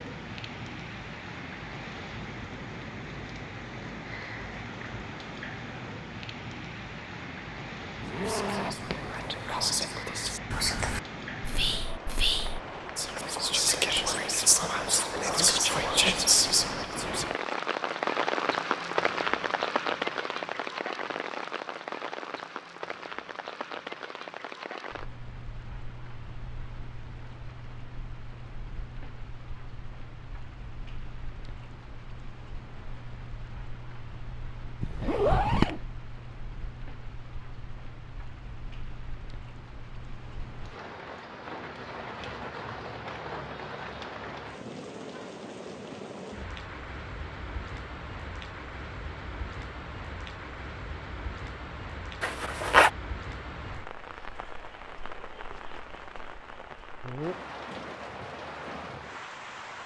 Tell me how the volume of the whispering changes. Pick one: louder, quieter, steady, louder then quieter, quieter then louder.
louder.